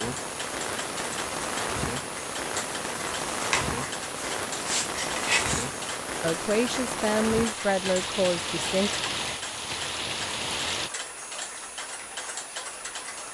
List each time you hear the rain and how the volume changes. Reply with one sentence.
You can hear the rain from 0.0 to 10.9 s, at a steady volume.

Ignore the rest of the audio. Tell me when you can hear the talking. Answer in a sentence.
You can hear the talking from 6.2 to 8.9 s.